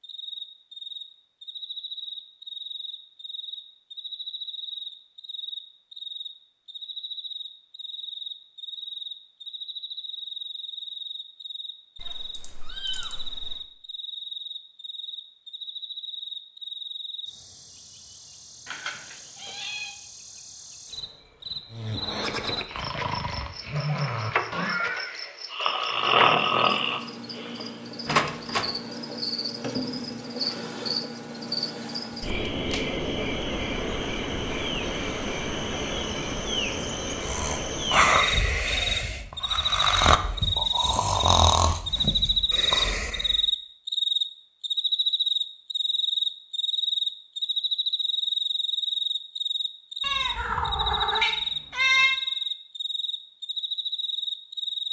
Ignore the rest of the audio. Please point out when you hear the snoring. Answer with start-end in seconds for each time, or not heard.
21.7-27.7, 37.2-43.4.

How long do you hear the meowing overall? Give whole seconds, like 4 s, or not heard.
5 s.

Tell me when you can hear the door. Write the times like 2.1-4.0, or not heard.
28.1-28.8.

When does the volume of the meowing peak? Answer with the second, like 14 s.
52 s.